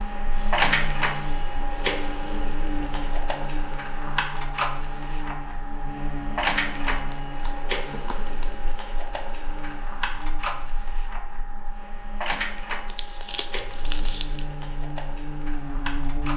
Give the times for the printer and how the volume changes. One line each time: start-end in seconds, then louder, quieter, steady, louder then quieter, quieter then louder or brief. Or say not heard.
0.0-16.3 quieter.